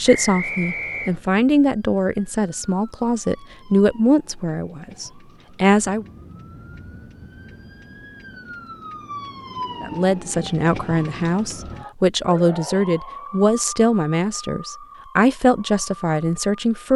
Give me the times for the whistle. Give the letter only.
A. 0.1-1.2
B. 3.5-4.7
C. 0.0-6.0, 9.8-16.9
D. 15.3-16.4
A.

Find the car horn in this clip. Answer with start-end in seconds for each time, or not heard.
not heard.